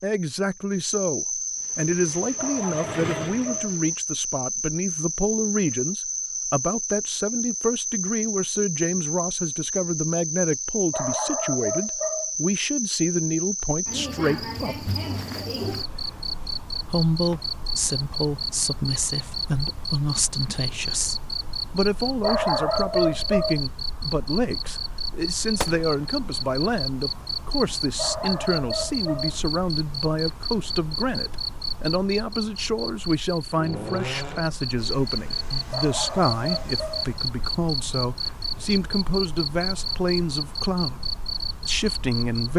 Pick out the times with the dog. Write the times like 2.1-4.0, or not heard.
2.4-3.8, 10.9-12.3, 22.2-23.6, 27.9-29.4, 35.7-37.1.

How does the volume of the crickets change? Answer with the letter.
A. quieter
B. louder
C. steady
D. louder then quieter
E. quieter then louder
C.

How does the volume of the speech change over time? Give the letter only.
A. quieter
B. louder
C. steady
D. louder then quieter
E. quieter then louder
C.